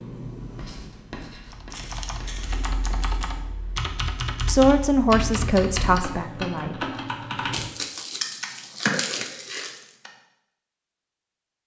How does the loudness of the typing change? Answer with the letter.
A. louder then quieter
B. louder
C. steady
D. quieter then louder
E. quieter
B.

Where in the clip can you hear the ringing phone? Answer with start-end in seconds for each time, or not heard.
not heard.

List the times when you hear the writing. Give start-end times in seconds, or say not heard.
0.0-3.2.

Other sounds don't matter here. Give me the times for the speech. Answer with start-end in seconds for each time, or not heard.
4.5-7.0.